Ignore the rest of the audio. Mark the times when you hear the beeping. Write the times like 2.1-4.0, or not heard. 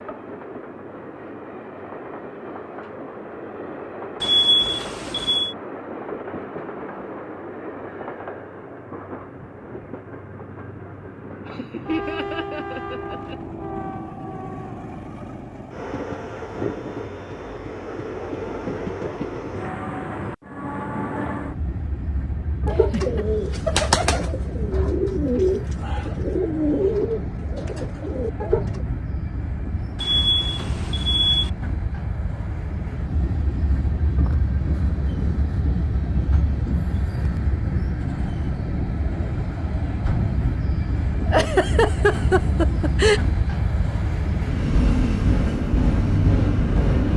4.2-5.5, 29.9-31.5.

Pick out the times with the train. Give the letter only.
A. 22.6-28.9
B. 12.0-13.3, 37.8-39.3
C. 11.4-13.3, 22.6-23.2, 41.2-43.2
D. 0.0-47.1
D.